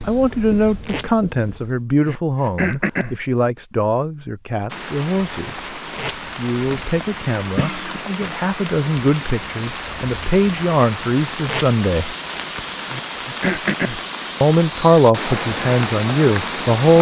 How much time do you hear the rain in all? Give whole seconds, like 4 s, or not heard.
12 s.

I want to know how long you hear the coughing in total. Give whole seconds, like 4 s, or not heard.
3 s.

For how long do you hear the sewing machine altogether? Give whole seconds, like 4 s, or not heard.
not heard.